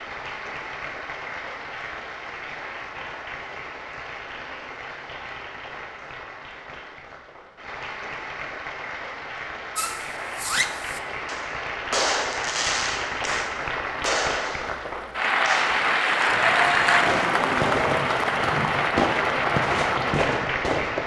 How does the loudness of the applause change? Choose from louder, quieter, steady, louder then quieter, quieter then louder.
louder.